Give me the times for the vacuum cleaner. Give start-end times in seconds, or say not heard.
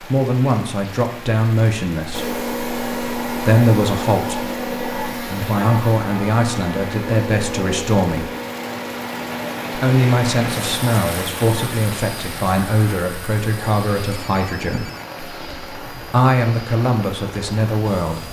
2.1-18.2.